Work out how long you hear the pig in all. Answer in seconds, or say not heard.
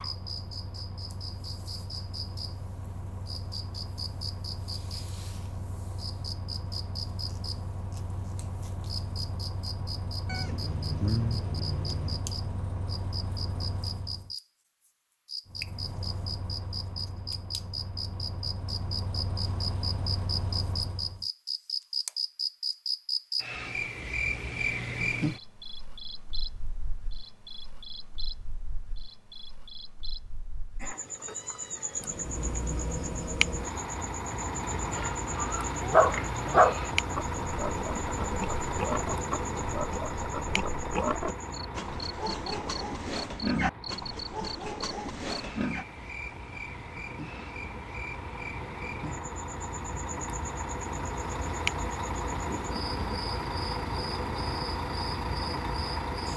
11 s.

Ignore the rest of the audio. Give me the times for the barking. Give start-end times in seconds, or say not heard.
35.8-36.8.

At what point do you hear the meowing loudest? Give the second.
11 s.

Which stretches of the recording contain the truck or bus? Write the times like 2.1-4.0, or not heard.
0.0-14.3, 15.4-21.2, 31.9-56.3.